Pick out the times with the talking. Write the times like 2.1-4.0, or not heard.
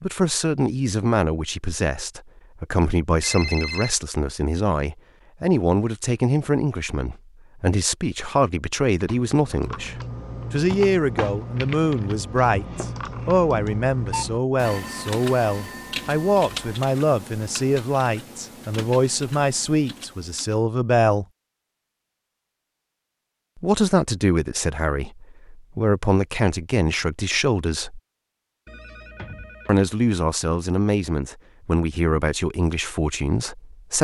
0.0-21.2, 23.6-28.0, 29.6-33.9.